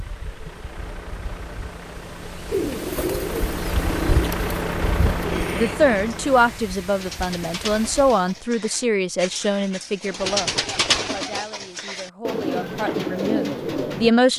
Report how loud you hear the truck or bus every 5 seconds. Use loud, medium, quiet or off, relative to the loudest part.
loud, loud, off.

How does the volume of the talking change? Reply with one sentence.
The loudness of the talking goes down, then up.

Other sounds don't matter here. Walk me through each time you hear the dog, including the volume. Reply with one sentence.
The dog can't be heard in this clip.